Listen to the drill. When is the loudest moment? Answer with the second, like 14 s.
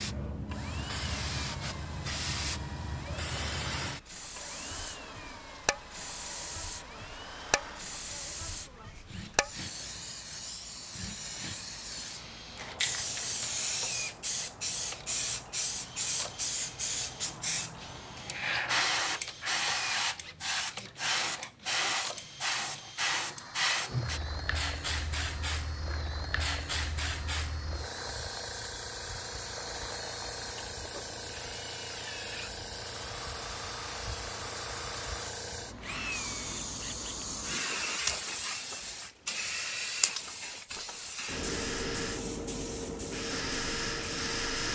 44 s.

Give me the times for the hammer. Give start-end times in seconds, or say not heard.
not heard.